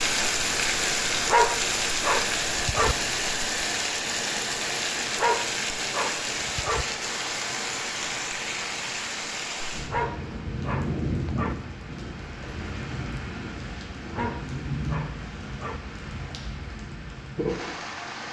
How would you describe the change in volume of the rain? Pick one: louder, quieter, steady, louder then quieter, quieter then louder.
quieter.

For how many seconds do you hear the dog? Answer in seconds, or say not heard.
7 s.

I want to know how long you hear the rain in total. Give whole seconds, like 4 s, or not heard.
18 s.